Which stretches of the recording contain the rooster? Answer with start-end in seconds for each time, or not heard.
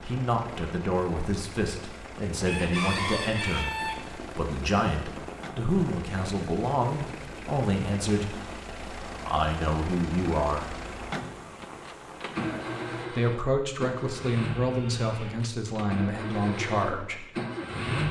2.5-4.0.